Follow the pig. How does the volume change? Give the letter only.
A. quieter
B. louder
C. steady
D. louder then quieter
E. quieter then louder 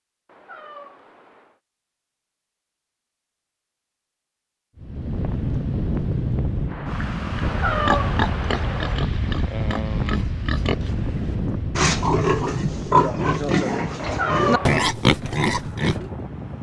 B.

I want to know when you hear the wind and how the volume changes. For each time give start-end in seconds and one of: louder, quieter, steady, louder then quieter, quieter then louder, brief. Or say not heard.
4.8-16.5 quieter.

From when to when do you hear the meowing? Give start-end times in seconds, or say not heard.
0.2-1.6, 7.4-9.1, 13.9-14.8.